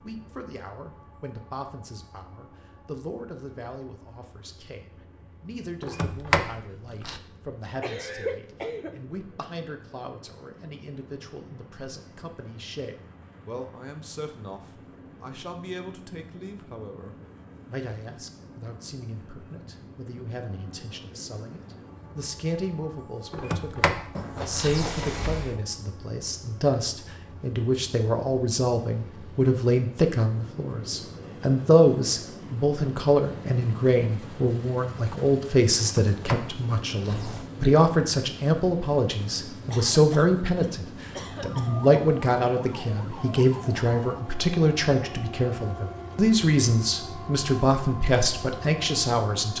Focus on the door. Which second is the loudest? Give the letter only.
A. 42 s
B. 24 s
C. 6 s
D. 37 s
C.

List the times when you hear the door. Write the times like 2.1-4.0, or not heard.
5.8-7.2, 23.3-25.6, 35.8-37.5.